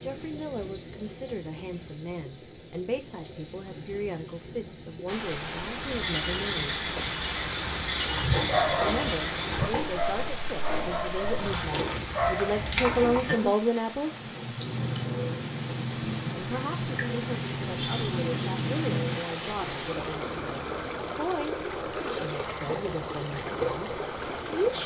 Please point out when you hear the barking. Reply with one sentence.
The barking can be heard from 8.0 to 13.4 s.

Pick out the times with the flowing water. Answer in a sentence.
The flowing water can be heard from 5.0 to 24.8 s.